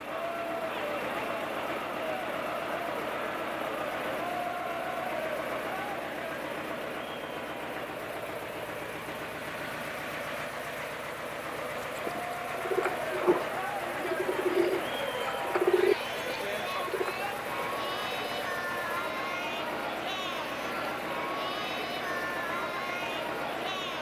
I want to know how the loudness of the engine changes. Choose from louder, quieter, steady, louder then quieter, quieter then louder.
steady.